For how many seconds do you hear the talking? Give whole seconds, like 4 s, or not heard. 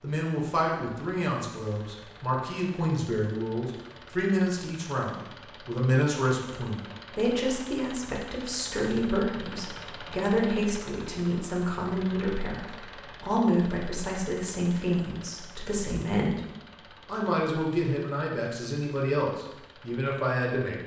20 s.